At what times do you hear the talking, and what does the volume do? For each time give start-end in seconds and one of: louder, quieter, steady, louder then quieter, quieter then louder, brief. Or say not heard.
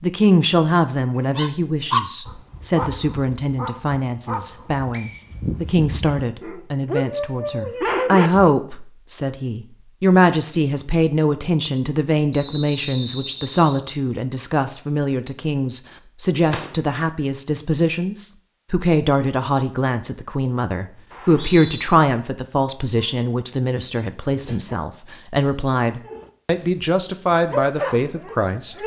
0.0-28.8 steady.